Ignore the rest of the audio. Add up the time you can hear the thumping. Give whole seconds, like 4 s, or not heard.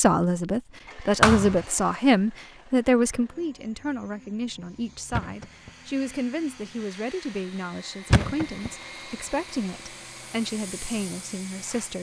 2 s.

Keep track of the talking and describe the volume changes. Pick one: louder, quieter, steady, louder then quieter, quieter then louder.
quieter.